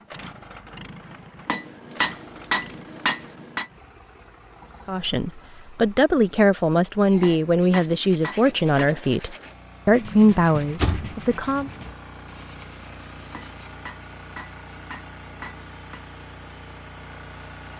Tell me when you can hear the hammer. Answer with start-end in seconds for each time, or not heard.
1.4-3.6, 7.2-8.9, 13.3-16.0.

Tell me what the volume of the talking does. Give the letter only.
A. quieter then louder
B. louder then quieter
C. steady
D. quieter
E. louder
C.